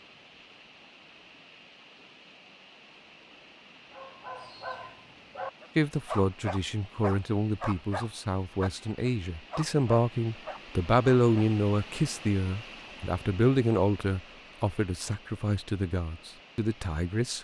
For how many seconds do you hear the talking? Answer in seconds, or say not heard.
12 s.